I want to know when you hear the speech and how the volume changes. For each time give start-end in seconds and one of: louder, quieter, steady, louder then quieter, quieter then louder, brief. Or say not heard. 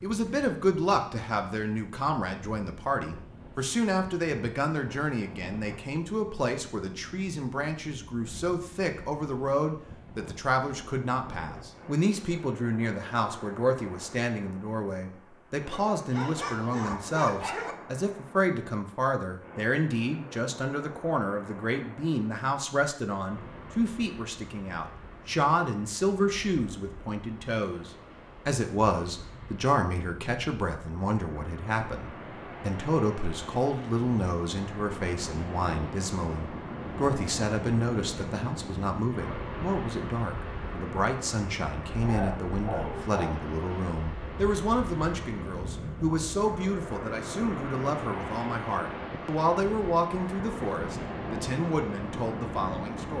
0.0-53.1 steady.